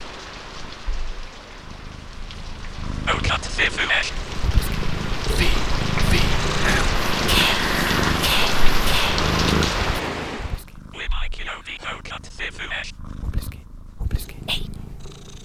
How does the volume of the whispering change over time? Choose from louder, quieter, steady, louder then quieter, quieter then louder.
quieter.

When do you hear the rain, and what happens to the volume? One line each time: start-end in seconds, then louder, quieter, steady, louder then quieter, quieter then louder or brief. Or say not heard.
0.0-10.6 louder.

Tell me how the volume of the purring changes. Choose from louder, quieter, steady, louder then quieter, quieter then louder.
louder then quieter.